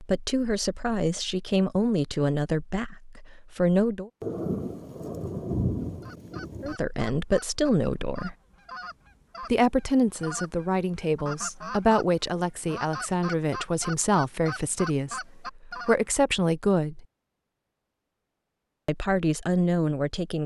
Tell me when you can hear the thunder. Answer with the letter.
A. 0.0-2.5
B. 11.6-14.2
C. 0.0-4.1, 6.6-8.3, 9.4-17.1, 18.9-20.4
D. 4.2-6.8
D.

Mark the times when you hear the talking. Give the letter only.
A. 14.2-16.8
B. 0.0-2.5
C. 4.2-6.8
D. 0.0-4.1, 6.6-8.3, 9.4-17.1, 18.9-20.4
D.